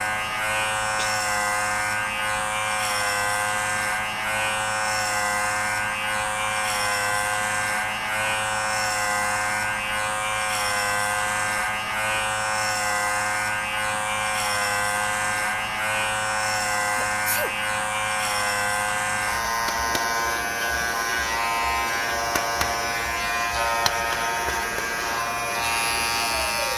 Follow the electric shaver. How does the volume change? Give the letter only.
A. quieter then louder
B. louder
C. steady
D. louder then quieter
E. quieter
C.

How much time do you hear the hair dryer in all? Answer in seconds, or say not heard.
27 s.